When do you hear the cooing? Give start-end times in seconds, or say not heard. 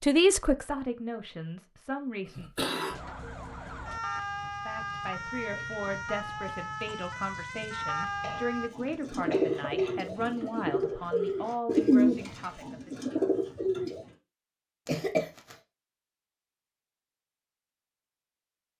8.8-14.0.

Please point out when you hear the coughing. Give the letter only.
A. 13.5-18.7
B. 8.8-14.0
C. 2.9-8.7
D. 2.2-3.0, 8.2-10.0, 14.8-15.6
D.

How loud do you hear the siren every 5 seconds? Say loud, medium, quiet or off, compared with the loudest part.
loud, loud, off, off.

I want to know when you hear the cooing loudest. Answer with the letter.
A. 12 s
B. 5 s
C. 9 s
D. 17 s
A.